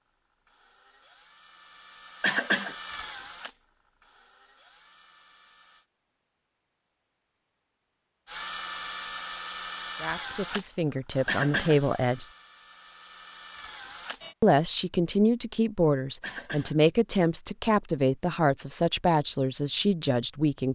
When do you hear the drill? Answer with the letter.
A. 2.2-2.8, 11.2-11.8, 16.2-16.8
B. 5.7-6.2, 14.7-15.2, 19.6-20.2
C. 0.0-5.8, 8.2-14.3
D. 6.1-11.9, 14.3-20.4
C.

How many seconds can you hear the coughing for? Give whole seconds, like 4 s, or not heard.
2 s.